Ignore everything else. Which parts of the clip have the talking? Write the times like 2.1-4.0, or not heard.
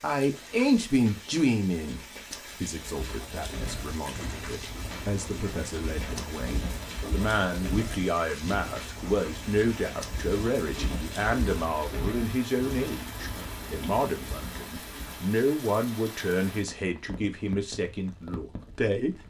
0.0-2.0, 2.6-19.2.